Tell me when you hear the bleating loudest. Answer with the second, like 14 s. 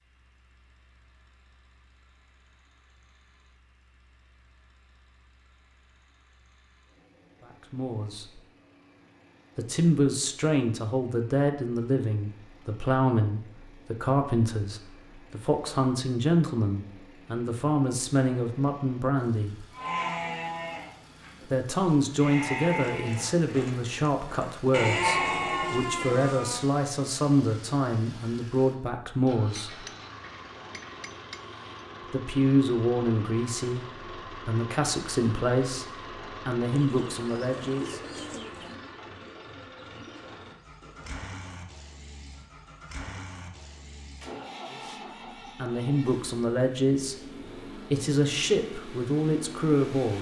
25 s.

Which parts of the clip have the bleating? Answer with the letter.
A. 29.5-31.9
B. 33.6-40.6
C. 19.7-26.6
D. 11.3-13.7
C.